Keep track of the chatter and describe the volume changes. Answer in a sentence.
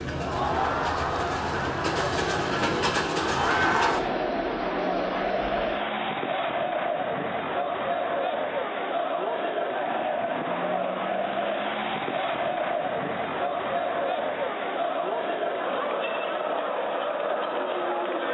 The loudness of the chatter stays about the same.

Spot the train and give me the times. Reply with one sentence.
The train can be heard from 0.0 to 5.8 s.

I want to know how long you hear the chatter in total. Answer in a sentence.
You can hear the chatter for 18 seconds altogether.